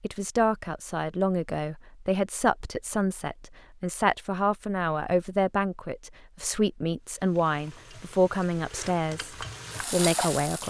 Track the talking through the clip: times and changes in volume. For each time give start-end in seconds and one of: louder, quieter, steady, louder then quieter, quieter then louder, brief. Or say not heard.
0.0-10.6 steady.